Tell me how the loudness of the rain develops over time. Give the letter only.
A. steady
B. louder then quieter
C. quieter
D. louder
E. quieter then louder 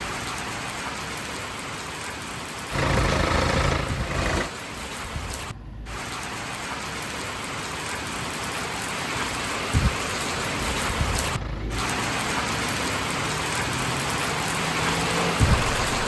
D.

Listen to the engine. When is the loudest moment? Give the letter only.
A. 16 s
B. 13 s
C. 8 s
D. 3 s
D.